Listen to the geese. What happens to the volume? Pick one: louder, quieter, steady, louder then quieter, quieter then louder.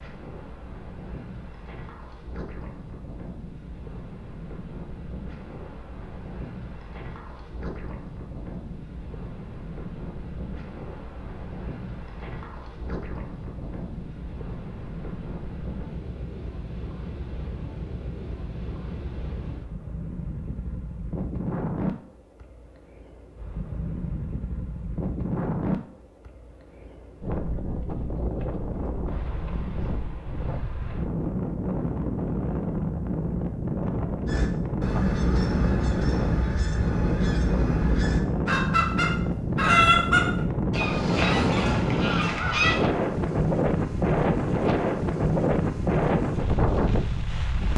louder then quieter.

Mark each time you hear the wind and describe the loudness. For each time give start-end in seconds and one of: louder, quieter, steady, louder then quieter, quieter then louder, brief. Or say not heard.
0.0-47.7 louder.